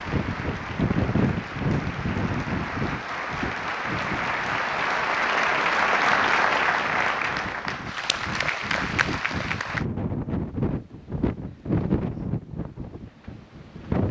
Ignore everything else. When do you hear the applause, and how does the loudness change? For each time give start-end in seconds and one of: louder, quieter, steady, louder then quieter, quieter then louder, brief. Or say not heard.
0.0-9.8 louder then quieter.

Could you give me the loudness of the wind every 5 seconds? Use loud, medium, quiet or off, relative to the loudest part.
loud, medium, loud.